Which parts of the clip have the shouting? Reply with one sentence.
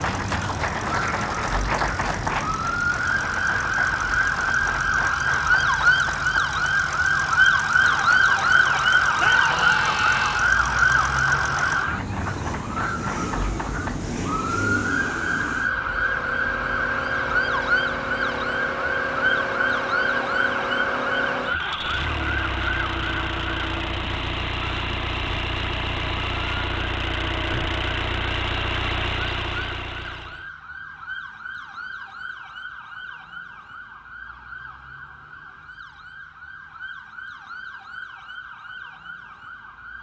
The shouting can be heard from 9.2 to 10.6 s.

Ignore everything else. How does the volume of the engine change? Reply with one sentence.
The volume of the engine goes up.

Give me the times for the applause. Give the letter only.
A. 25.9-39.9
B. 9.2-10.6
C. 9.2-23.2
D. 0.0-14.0
D.